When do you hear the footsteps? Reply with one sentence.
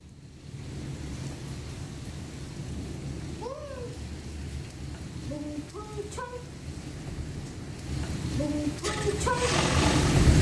You can't hear the footsteps here.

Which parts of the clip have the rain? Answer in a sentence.
You can hear the rain from 0.0 to 10.3 s.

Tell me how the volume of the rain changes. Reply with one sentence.
The loudness of the rain goes up.